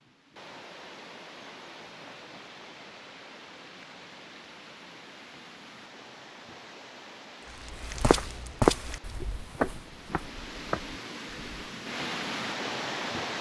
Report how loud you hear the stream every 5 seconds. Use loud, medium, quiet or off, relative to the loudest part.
medium, quiet, loud.